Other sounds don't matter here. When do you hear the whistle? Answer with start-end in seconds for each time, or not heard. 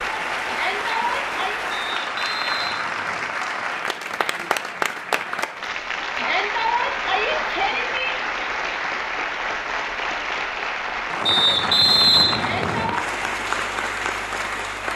1.7-3.4, 11.2-12.9.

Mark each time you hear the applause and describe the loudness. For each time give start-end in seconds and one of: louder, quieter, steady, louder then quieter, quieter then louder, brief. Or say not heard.
0.0-14.9 steady.